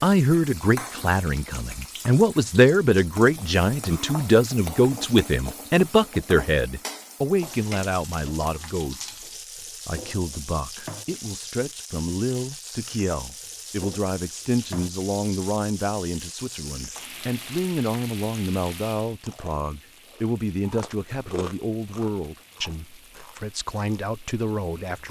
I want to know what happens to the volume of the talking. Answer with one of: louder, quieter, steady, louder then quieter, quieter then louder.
quieter.